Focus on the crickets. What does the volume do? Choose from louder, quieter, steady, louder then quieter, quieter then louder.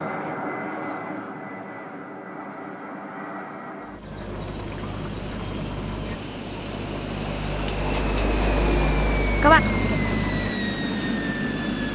louder then quieter.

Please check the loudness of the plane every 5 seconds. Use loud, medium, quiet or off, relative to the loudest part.
medium, medium, loud.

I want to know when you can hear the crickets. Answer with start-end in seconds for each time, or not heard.
3.8-11.9.